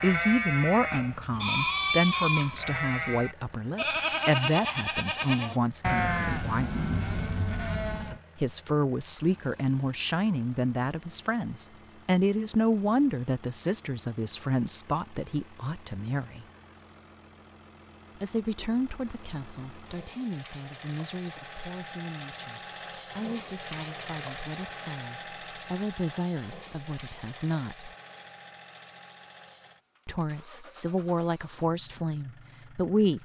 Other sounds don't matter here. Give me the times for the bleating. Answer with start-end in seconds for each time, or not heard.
0.0-8.2.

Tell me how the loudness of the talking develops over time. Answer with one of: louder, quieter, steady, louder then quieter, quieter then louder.
quieter then louder.